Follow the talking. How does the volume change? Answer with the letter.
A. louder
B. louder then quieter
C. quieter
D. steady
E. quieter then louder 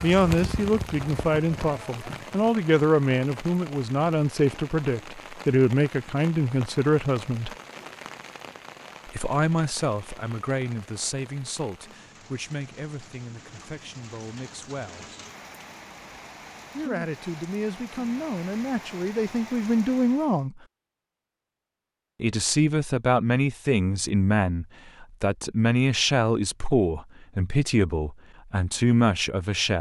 E.